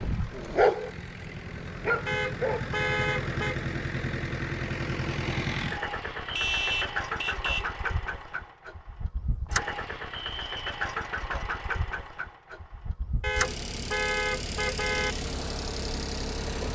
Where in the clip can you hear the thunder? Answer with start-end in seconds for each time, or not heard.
not heard.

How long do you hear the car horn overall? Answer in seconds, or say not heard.
5 s.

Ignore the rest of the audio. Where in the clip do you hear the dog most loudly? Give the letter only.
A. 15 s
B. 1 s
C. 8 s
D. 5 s
B.